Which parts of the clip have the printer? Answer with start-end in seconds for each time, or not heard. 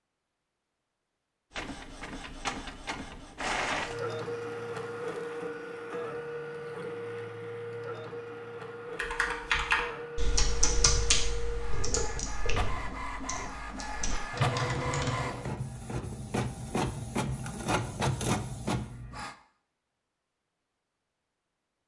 1.6-19.4.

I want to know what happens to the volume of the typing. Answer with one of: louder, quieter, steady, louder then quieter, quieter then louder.
quieter then louder.